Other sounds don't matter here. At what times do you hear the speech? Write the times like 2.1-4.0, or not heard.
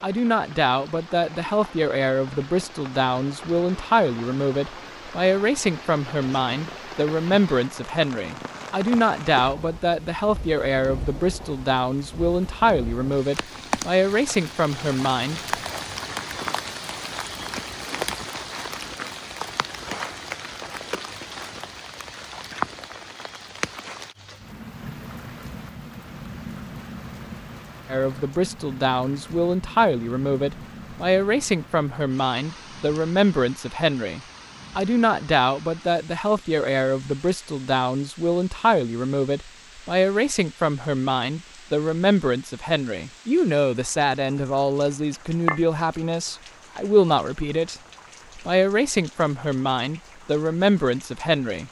0.0-15.4, 27.9-47.8, 48.4-51.6.